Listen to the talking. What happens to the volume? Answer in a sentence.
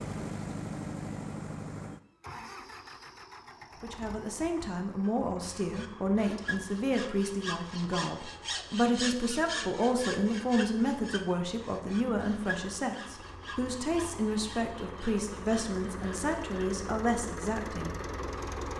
The volume of the talking stays about the same.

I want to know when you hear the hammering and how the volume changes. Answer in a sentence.
The hammering can't be heard in this clip.